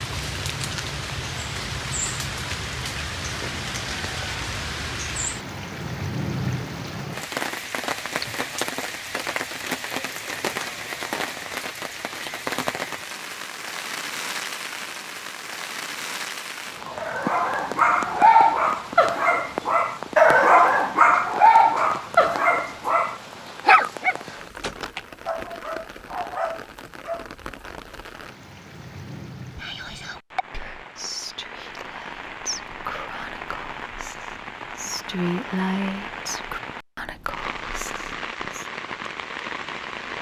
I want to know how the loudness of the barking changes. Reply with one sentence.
The volume of the barking goes down.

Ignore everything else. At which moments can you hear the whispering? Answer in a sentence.
The whispering can be heard from 29.6 to 38.6 s.